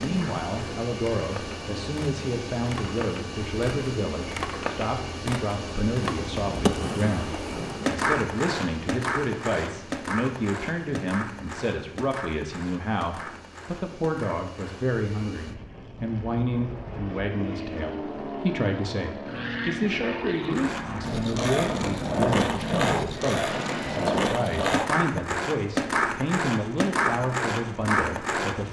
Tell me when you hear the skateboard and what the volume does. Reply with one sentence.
You can hear the skateboard from 0.0 to 15.0 s, getting louder then quieter; and from 20.4 to 28.6 s, at a steady volume.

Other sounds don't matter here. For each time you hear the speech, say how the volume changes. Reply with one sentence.
The speech can be heard from 0.0 to 28.6 s, at a steady volume.